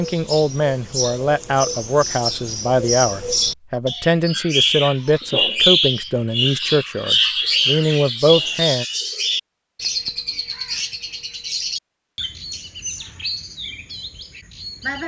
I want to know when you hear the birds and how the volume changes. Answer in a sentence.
The birds can be heard from 0.0 to 15.0 s, getting louder then quieter.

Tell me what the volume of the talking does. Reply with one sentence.
The loudness of the talking stays about the same.